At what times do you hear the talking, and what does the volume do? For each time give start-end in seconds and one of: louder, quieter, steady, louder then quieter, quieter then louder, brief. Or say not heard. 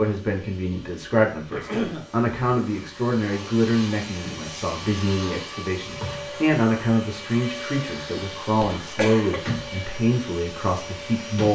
0.0-11.5 steady.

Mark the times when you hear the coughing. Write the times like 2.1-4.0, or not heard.
1.5-2.0, 8.5-9.4.